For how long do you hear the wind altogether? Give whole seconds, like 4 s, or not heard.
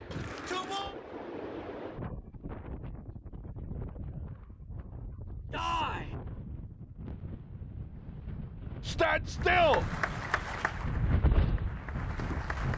13 s.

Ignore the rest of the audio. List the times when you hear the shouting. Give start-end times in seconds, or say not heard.
0.1-0.9, 5.5-6.2, 8.8-9.8.